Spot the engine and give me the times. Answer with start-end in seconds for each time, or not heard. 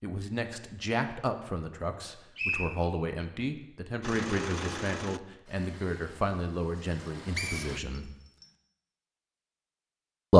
4.0-7.8.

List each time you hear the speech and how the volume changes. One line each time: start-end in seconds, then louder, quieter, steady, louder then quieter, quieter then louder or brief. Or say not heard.
0.0-8.1 steady.